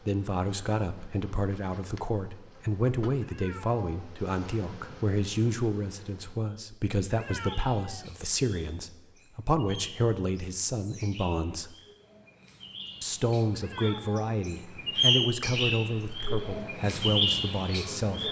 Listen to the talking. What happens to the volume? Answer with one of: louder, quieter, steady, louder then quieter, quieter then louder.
steady.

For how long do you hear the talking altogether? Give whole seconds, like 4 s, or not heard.
17 s.